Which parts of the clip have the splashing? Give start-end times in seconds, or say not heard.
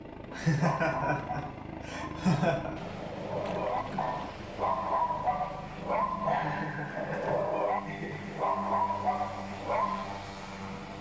3.4-4.4.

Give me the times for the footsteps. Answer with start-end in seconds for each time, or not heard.
not heard.